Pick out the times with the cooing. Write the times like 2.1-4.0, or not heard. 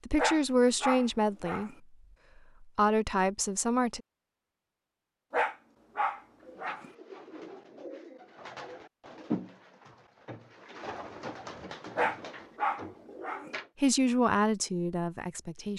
6.4-13.7.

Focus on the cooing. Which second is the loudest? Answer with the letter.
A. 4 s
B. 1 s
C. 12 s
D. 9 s
D.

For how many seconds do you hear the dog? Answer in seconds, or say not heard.
5 s.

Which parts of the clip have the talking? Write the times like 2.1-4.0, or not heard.
0.1-1.7, 2.6-4.0, 13.8-15.7.